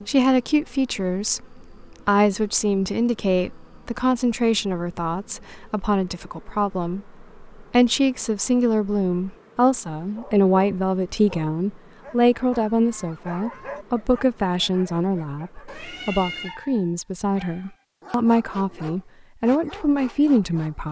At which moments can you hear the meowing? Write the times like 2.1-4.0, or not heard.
15.7-16.6.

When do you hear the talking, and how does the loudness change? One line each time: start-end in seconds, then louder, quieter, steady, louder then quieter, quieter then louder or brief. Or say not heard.
0.1-20.8 steady.